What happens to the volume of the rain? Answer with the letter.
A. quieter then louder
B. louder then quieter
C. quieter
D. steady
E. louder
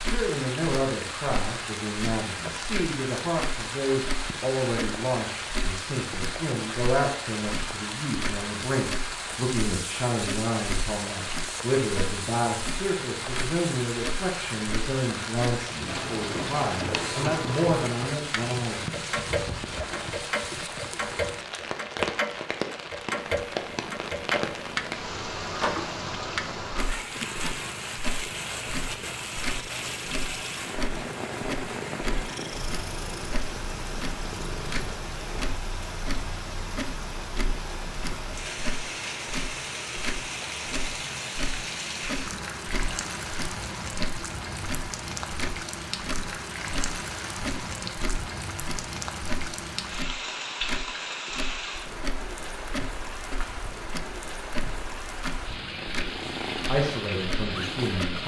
D.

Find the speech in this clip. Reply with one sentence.
You can hear the speech from 0.0 to 18.8 s and from 56.6 to 58.2 s.